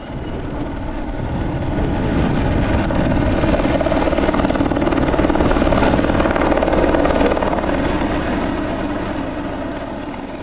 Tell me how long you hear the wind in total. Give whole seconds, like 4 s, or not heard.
6 s.